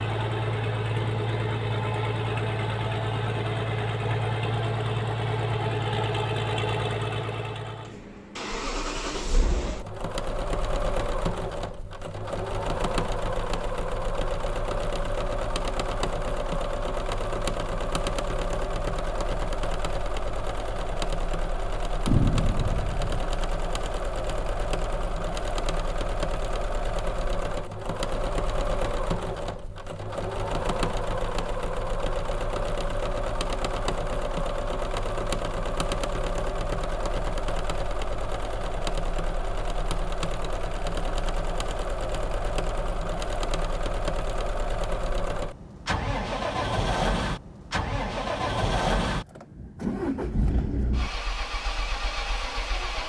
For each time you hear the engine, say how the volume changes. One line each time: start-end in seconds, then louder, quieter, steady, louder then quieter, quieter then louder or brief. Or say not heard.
0.0-53.0 steady.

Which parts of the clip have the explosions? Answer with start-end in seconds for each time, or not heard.
22.1-23.3.